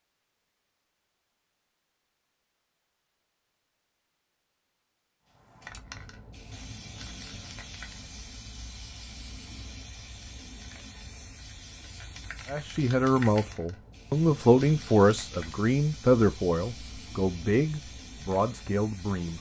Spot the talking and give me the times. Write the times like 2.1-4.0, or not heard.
12.4-19.3.